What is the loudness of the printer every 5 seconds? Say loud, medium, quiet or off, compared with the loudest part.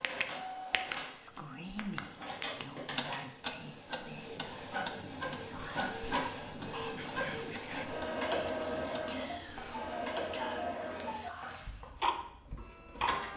medium, loud, loud.